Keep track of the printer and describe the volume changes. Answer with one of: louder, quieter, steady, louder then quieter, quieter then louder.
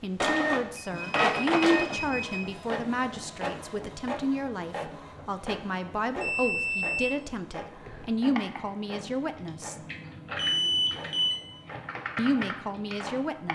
quieter.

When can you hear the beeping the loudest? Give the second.
11 s.